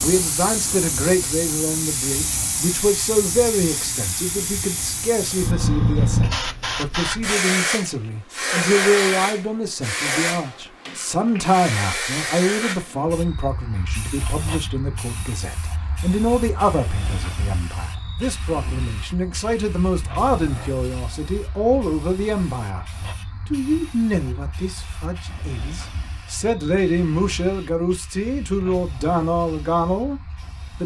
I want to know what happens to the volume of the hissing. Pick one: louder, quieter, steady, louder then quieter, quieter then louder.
quieter.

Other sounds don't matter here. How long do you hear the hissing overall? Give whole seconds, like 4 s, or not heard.
31 s.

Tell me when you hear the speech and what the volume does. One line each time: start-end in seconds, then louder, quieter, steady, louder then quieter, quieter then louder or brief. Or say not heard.
0.0-22.9 steady
23.5-30.2 quieter then louder.